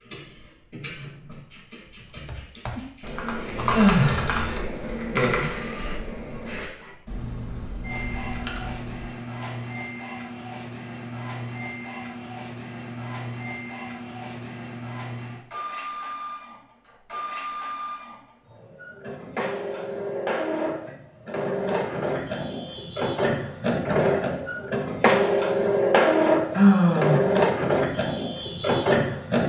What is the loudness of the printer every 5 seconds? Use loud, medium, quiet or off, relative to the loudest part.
quiet, quiet, quiet, quiet, medium, loud.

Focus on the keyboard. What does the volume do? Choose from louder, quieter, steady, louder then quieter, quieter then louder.
quieter.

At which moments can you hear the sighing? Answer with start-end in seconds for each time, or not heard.
3.7-4.5, 26.6-27.2.